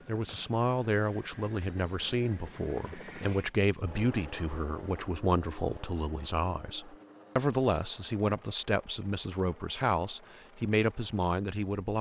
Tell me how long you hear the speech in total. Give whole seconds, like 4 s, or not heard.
12 s.